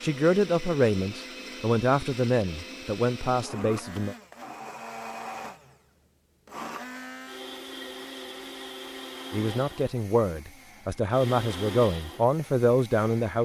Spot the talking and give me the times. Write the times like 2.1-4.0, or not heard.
0.0-4.2, 9.3-13.3.